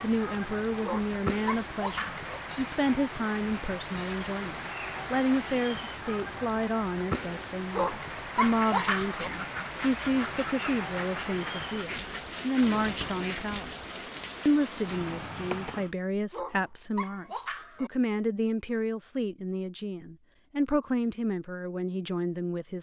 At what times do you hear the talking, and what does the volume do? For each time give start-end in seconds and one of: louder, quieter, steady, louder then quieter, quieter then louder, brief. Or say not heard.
0.0-22.7 steady.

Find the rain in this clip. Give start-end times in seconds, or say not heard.
0.0-15.9.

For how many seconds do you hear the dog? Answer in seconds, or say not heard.
5 s.